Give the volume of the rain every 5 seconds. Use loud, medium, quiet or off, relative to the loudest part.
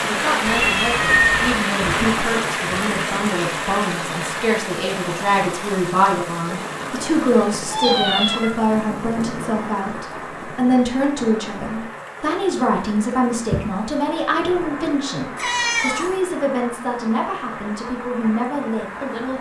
loud, medium, medium, medium.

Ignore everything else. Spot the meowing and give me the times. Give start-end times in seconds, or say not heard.
0.5-1.5, 7.7-8.7, 15.3-16.1.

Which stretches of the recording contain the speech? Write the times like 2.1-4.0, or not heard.
0.0-19.3.